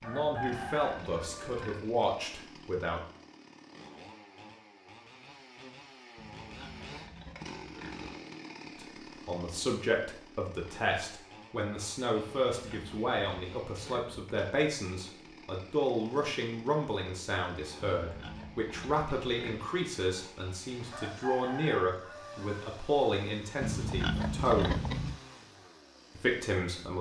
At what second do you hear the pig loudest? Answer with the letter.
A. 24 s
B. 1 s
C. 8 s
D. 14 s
A.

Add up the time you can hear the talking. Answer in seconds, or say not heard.
20 s.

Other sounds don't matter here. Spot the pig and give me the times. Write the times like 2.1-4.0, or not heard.
0.0-1.9, 6.2-8.2, 12.2-14.3, 17.8-19.7, 23.6-25.2.